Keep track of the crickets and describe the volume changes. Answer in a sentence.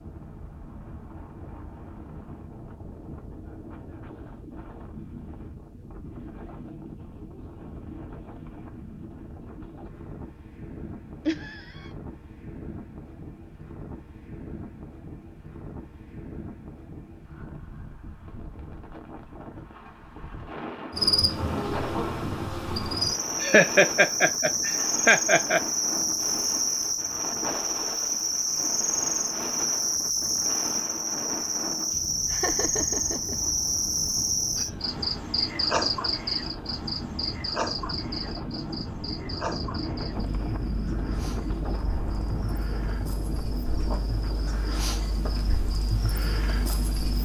The loudness of the crickets goes down.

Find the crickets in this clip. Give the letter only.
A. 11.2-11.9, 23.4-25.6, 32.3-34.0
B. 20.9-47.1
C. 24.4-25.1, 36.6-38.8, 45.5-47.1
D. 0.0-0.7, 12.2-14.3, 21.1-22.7
B.